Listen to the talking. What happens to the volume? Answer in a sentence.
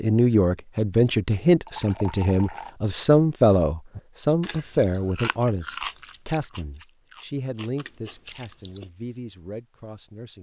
The loudness of the talking goes down.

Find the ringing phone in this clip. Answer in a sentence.
You can't hear the ringing phone here.